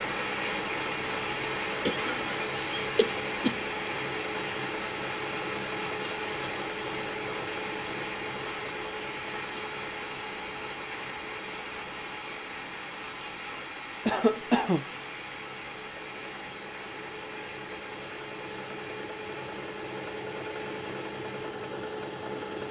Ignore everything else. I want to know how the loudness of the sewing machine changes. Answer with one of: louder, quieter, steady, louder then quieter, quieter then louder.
quieter then louder.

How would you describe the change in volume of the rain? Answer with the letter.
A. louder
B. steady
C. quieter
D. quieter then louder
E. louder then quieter
C.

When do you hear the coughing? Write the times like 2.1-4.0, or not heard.
1.9-3.6, 14.1-14.8.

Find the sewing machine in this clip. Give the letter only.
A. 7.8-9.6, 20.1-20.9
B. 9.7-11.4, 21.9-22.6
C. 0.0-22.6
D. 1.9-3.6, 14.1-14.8
C.